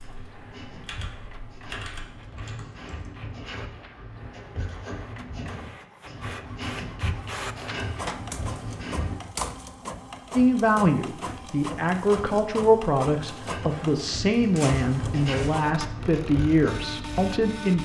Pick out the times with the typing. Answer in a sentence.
The typing can be heard from 0.0 to 3.2 s.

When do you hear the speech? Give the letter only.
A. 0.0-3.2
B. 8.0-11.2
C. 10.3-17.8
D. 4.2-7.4
C.